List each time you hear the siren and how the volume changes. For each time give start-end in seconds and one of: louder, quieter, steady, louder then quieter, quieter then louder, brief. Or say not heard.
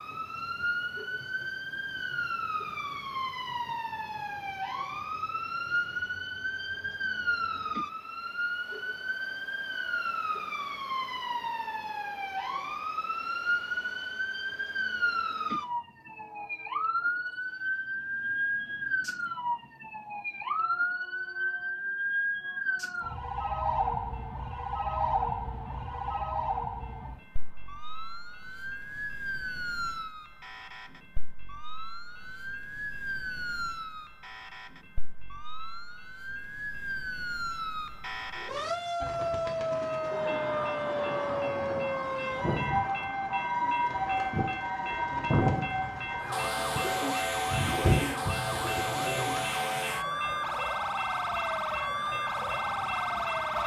0.0-53.6 steady.